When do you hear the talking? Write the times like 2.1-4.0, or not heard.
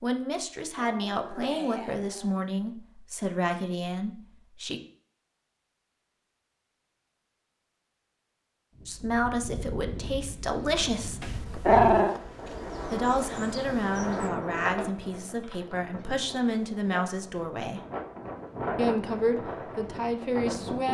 0.0-4.8, 8.8-11.2, 12.9-17.8, 18.8-20.8.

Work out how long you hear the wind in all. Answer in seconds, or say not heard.
12 s.